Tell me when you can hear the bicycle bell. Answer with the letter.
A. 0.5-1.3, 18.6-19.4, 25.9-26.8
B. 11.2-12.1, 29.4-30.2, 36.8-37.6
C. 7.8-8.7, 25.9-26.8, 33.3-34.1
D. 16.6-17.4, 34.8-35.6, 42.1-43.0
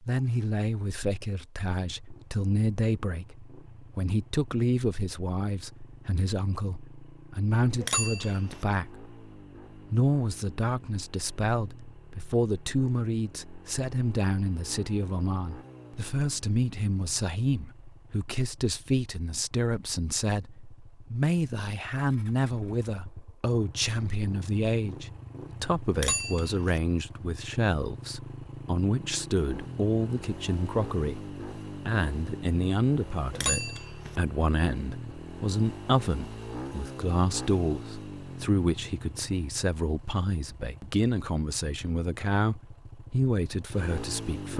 C.